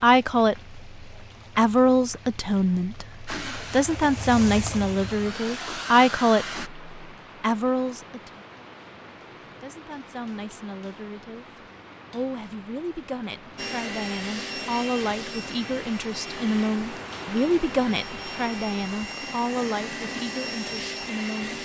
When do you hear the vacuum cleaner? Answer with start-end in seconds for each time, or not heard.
3.2-6.7, 13.6-21.5.